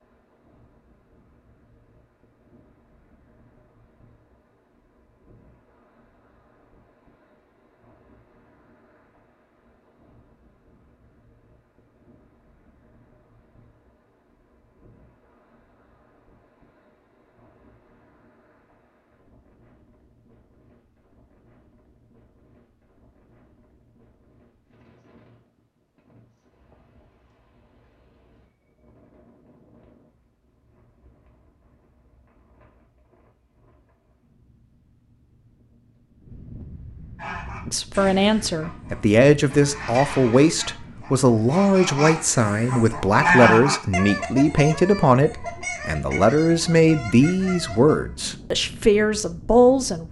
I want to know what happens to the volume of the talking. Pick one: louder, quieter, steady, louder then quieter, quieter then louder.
steady.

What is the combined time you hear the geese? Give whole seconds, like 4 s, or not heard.
11 s.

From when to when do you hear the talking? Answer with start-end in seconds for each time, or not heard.
37.6-50.0.